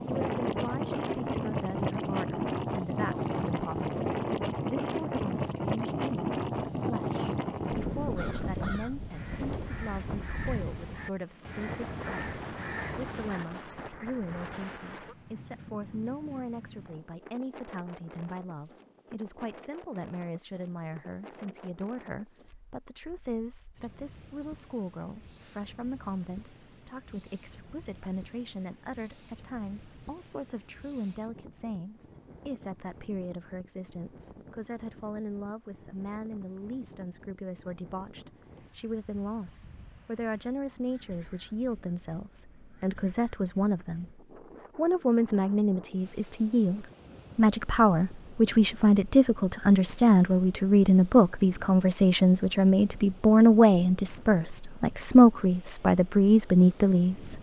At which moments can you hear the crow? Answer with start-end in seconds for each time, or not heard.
8.1-13.4.